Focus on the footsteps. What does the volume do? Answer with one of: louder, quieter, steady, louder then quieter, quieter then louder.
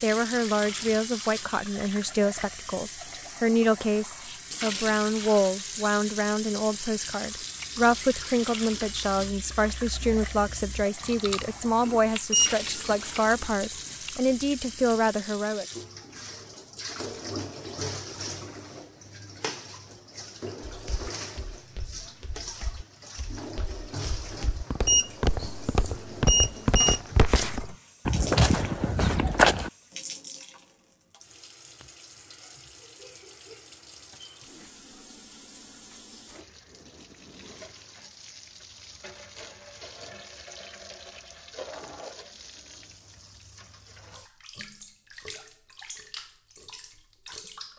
louder.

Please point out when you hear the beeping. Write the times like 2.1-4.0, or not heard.
12.3-13.3, 24.9-27.0.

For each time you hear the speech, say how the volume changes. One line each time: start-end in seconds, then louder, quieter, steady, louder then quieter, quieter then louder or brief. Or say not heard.
0.0-15.7 steady.